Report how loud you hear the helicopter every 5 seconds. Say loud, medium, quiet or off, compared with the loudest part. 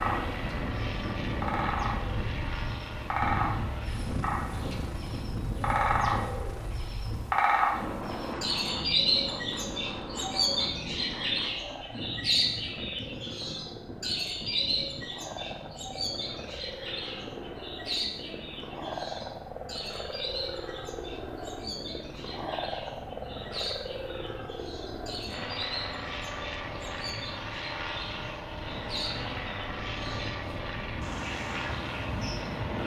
loud, medium, medium, loud, loud, loud, loud.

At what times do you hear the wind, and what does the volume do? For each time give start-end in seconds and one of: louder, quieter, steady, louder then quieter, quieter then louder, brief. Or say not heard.
0.0-32.8 quieter then louder.